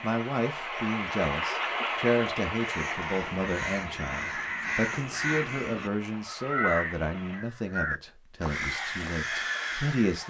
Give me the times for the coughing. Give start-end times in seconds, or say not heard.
not heard.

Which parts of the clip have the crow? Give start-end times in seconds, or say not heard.
2.5-10.2.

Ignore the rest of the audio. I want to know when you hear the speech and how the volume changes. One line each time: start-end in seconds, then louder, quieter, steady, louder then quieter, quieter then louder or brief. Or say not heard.
0.0-10.2 quieter.